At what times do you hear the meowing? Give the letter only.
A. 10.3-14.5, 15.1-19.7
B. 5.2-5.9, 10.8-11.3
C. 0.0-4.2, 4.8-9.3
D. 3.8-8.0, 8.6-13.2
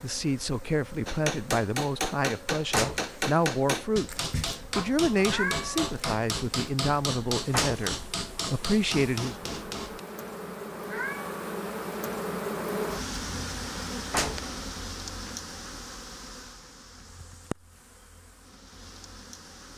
B.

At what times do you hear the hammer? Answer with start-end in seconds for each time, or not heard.
1.1-10.0.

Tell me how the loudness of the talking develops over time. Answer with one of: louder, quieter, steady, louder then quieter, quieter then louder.
steady.